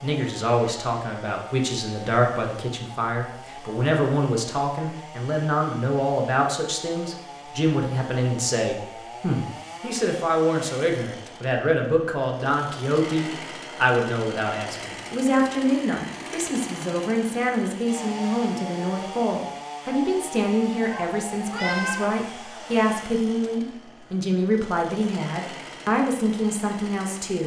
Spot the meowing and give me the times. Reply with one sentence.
The meowing can be heard from 20.9 to 22.1 s.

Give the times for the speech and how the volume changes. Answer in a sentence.
The speech can be heard from 0.0 to 27.4 s, at a steady volume.